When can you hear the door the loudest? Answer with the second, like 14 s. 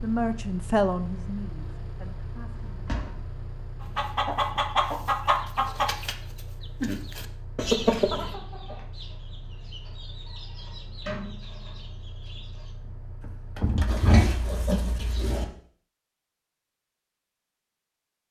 14 s.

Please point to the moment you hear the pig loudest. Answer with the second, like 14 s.
14 s.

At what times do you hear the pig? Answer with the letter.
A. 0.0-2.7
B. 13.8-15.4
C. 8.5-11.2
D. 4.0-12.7
B.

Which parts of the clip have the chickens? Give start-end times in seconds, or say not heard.
4.0-12.7.